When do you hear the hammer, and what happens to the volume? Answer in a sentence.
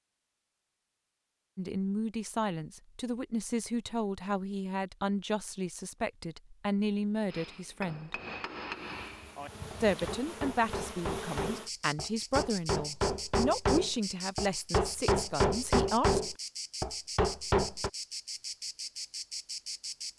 You can hear the hammer from 7.3 to 17.9 s, getting louder.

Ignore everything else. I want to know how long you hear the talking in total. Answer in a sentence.
The talking can be heard for 13 seconds in total.